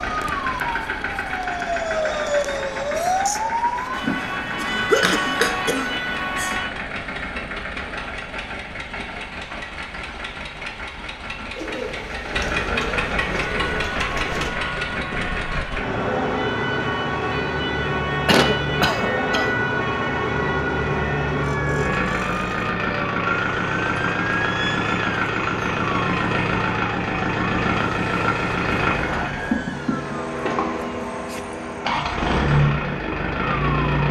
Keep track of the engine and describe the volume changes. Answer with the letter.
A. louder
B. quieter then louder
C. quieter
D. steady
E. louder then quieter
A.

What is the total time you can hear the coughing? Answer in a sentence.
You can hear the coughing for 4 seconds altogether.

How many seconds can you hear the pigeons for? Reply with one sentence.
You can hear the pigeons for 3 seconds altogether.